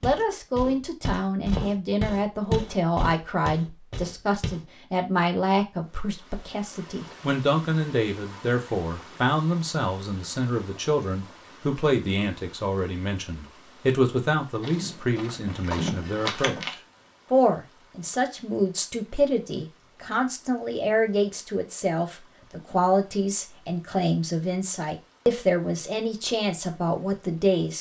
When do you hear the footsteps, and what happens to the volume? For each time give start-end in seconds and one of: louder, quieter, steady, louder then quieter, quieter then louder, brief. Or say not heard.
0.0-4.7 louder then quieter
14.6-16.8 brief.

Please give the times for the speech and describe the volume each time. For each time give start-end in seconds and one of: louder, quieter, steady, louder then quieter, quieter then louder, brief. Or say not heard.
0.0-27.7 steady.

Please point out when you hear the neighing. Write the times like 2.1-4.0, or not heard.
not heard.